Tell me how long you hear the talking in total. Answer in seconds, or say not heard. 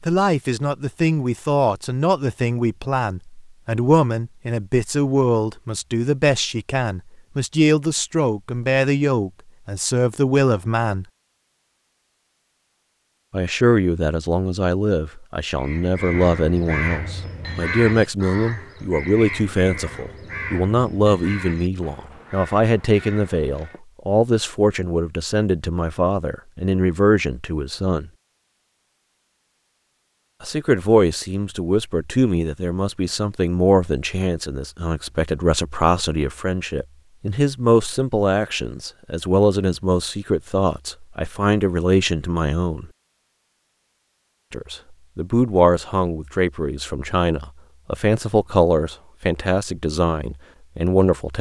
45 s.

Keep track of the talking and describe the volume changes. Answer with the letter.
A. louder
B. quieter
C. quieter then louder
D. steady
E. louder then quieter
D.